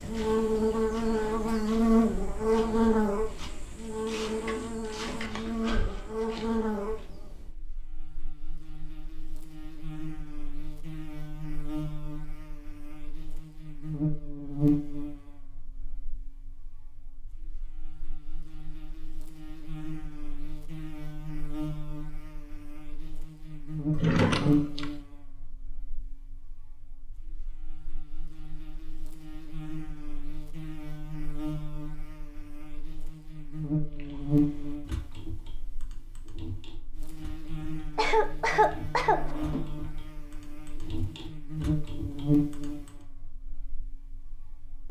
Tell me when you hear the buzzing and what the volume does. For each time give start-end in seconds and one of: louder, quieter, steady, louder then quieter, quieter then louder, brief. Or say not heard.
0.0-44.8 quieter.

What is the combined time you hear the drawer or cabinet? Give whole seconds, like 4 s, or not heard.
3 s.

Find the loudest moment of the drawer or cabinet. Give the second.
24 s.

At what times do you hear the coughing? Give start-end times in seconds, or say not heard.
38.0-39.2.